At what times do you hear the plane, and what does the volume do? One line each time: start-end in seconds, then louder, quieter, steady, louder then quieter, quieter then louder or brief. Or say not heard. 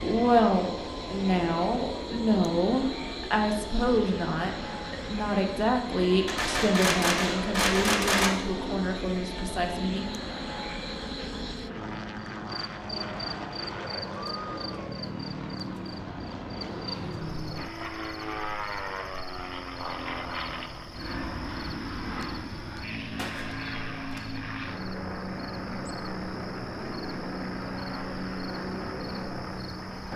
0.0-30.1 steady.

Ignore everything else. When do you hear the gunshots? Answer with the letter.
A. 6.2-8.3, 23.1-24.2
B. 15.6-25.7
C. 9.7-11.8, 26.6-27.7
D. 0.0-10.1
A.